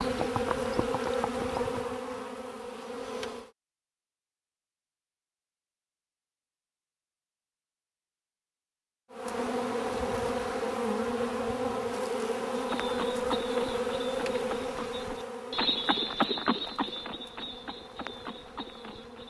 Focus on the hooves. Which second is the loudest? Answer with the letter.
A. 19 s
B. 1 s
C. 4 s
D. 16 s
D.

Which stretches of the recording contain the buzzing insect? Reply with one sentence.
You can hear the buzzing insect from 0.0 to 3.5 s and from 9.1 to 19.2 s.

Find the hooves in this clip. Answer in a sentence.
The hooves can be heard from 0.0 to 1.8 s and from 12.6 to 19.2 s.